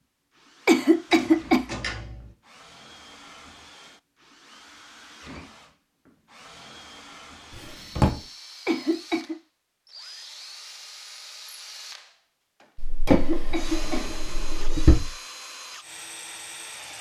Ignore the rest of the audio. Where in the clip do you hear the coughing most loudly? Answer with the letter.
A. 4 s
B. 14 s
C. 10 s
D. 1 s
D.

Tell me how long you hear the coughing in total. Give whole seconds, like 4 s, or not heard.
3 s.